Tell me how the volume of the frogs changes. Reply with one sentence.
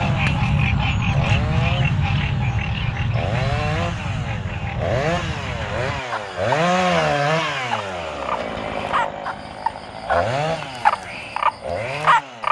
The loudness of the frogs goes down, then up.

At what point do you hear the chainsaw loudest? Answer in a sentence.
The loudest moment of the chainsaw is at 7 seconds.